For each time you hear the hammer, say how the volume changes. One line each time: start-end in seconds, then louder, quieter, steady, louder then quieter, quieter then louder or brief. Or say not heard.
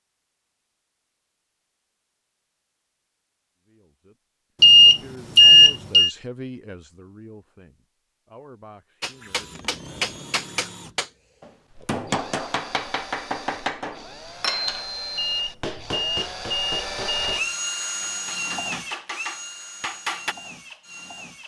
9.0-20.4 quieter.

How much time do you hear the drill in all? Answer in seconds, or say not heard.
12 s.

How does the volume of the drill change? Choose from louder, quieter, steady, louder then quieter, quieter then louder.
louder then quieter.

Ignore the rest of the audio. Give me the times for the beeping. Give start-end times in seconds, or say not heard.
4.6-6.1, 15.2-17.4.